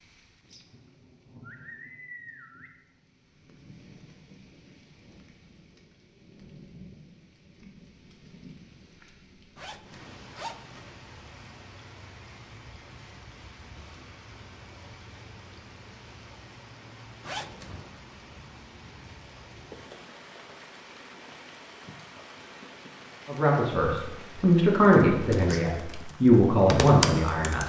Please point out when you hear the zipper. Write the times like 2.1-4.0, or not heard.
9.6-10.9, 17.2-18.0.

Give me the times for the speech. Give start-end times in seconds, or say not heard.
23.2-27.6.